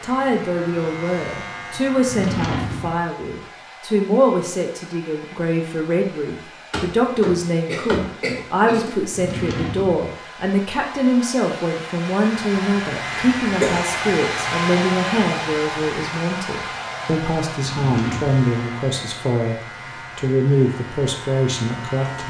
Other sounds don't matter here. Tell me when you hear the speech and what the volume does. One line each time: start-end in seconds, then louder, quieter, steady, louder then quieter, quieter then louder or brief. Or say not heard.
0.0-19.6 steady
20.1-22.2 brief.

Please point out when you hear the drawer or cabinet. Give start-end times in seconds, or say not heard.
2.0-3.0, 9.1-10.1, 17.6-18.4.